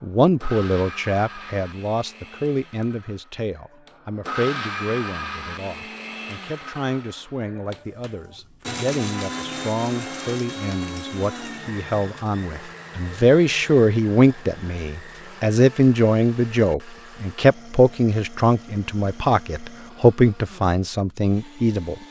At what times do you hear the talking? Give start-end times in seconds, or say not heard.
0.0-21.9.